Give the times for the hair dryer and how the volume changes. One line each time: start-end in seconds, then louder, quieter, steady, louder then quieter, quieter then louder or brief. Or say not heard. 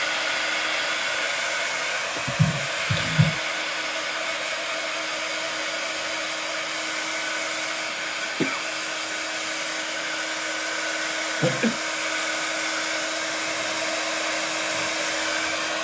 0.0-15.7 steady.